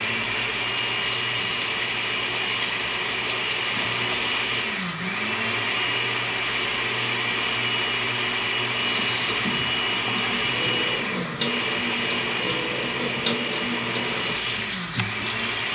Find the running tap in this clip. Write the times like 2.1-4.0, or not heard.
0.0-15.7.